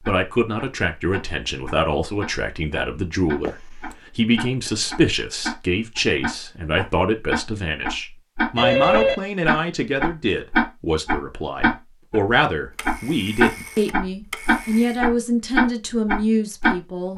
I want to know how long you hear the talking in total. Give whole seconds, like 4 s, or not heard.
17 s.